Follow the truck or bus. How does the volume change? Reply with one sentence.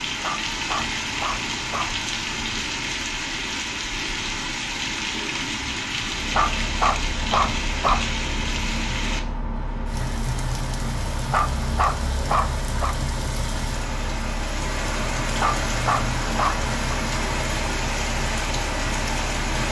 The volume of the truck or bus stays about the same.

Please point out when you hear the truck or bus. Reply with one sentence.
You can hear the truck or bus from 6.1 to 19.6 s.